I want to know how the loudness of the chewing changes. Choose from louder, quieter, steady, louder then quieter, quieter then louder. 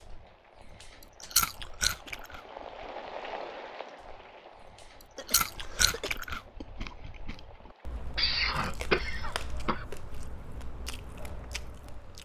quieter.